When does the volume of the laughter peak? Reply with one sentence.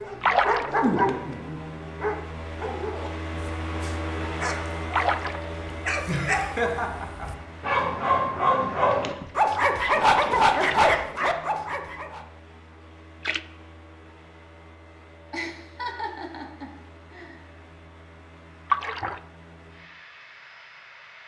The volume of the laughter peaks at 7 seconds.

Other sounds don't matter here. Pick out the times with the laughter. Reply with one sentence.
You can hear the laughter from 6.0 to 7.3 s and from 15.3 to 17.4 s.